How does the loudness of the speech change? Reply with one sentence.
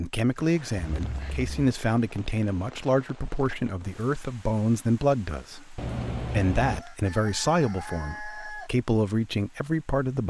The volume of the speech stays about the same.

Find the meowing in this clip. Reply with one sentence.
You can hear the meowing from 0.8 to 1.7 s and from 5.8 to 6.8 s.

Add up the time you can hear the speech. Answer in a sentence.
You can hear the speech for 10 seconds altogether.